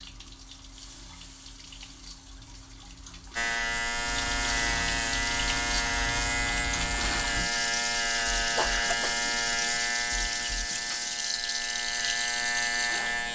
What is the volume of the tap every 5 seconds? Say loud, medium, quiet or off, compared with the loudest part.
medium, loud, loud.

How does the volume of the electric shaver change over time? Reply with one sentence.
The loudness of the electric shaver stays about the same.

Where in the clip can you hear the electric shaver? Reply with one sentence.
The electric shaver can be heard from 3.4 to 13.3 s.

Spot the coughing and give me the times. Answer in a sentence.
You can hear the coughing from 8.6 to 9.2 s.